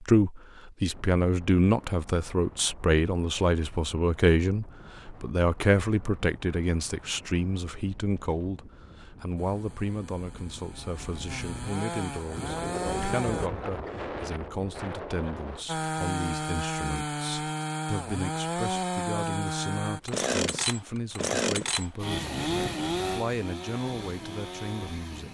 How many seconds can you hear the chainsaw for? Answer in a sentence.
You can hear the chainsaw for 14 seconds altogether.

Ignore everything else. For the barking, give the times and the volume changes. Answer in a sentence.
You can't hear the barking here.